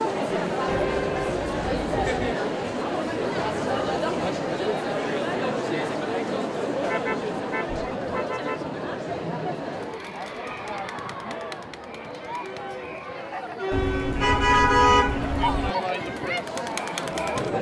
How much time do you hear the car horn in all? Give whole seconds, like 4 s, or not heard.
5 s.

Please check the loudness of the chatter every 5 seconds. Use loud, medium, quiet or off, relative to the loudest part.
loud, loud, medium, loud.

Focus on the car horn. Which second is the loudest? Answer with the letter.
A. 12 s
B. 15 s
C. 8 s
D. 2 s
B.